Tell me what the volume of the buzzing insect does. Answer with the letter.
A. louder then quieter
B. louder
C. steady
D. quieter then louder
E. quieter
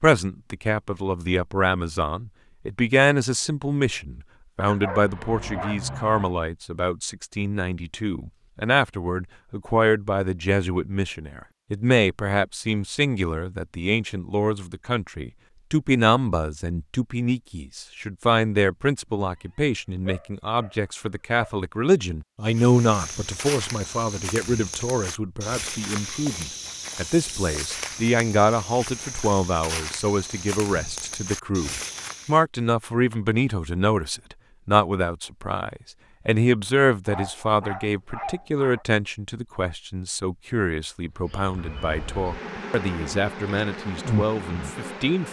B.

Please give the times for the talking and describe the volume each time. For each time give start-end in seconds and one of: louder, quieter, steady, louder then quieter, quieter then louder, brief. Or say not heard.
0.0-45.2 steady.